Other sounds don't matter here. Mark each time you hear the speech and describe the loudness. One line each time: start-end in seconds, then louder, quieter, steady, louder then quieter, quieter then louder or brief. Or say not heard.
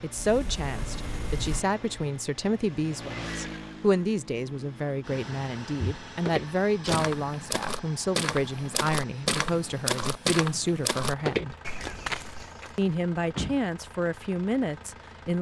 0.0-11.6 steady
12.8-15.3 brief.